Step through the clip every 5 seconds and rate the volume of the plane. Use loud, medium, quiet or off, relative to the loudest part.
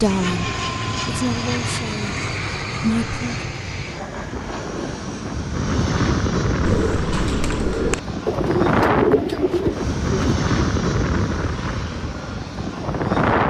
medium, loud, loud.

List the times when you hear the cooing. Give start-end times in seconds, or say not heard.
6.6-10.3.